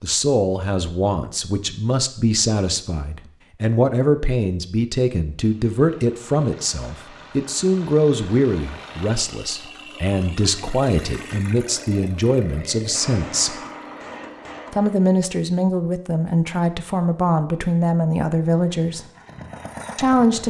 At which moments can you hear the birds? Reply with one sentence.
The birds can't be heard in this clip.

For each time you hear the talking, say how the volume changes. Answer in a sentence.
The talking can be heard from 0.0 to 13.6 s, at a steady volume; from 14.7 to 19.1 s, at a steady volume; and briefly from 19.9 to 20.4 s.